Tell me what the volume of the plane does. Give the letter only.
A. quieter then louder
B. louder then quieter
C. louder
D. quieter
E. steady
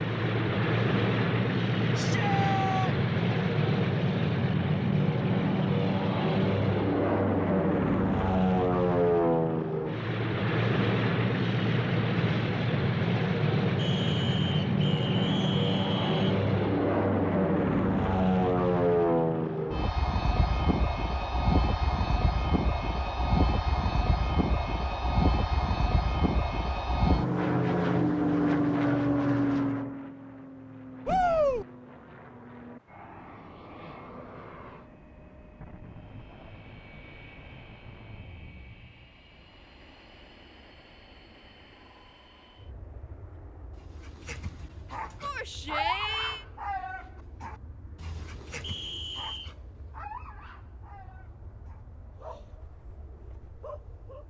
D.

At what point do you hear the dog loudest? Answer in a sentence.
The loudest moment of the dog is at 46 seconds.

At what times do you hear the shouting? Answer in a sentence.
The shouting can be heard from 1.9 to 3.0 s, from 31.1 to 31.6 s and from 45.2 to 46.5 s.